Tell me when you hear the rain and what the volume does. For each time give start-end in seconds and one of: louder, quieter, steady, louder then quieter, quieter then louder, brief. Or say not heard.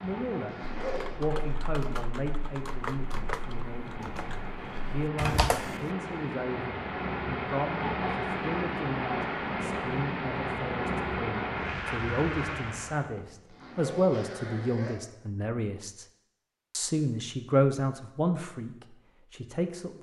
0.0-13.1 louder.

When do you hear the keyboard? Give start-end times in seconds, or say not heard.
0.8-5.9.